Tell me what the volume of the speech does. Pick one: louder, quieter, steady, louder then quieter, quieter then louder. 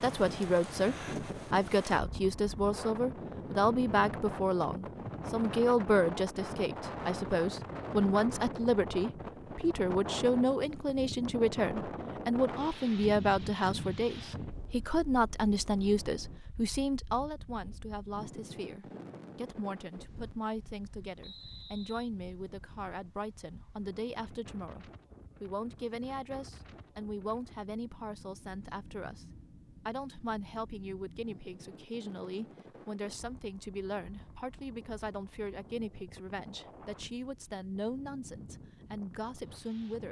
quieter.